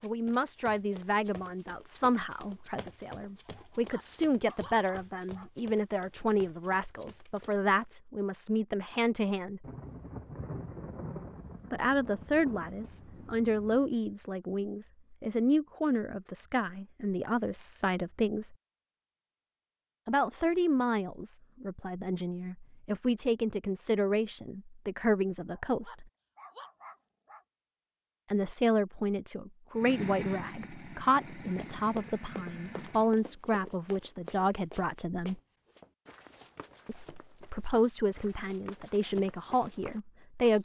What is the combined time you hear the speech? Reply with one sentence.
The speech can be heard for 33 seconds in total.